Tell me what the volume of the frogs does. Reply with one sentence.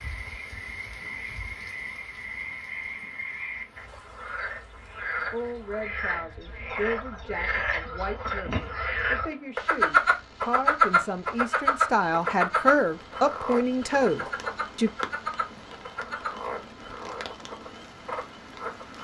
The volume of the frogs goes up, then down.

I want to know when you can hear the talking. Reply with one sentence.
The talking can be heard from 5.3 to 14.9 s.